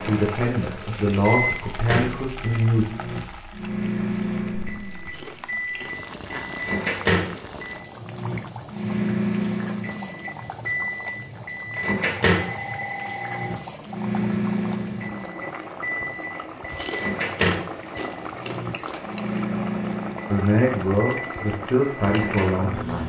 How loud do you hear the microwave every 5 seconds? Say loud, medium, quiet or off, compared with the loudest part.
loud, loud, loud, loud, medium.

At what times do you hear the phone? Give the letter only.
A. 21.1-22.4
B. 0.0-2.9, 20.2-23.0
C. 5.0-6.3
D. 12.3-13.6
D.